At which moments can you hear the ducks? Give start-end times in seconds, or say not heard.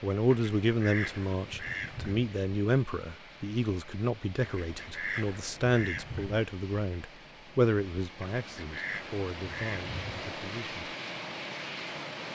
0.3-2.3, 4.4-6.5, 8.3-10.2.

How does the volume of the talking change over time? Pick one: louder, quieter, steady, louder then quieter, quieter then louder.
quieter.